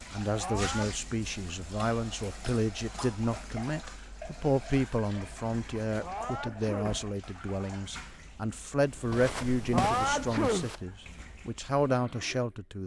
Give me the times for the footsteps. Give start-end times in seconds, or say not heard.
8.8-10.8.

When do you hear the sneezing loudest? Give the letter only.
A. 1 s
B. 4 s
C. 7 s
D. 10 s
D.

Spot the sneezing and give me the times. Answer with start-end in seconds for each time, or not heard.
0.3-0.9, 6.0-7.0, 9.7-10.7.